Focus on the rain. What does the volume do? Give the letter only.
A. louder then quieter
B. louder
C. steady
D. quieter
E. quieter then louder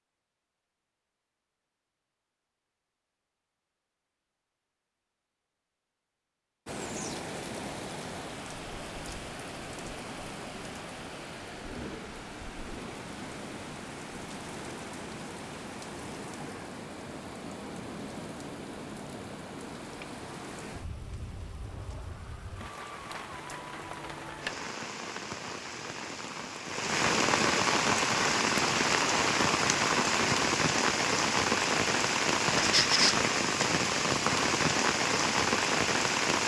B.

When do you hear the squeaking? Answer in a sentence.
The squeaking can be heard from 32.5 to 33.1 s.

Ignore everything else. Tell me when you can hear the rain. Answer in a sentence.
You can hear the rain from 6.7 to 36.4 s.